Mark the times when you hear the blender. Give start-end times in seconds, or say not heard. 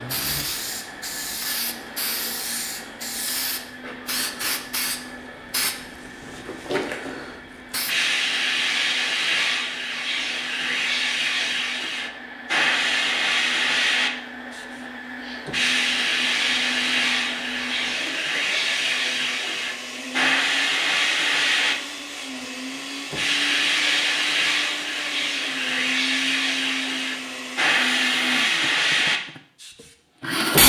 0.0-30.6.